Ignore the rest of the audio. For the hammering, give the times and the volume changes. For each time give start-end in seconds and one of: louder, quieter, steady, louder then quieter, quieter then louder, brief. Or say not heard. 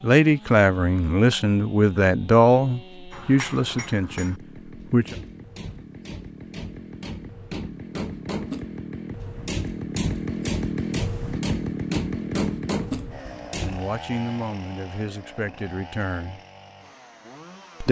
3.1-13.9 louder.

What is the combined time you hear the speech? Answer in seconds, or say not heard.
8 s.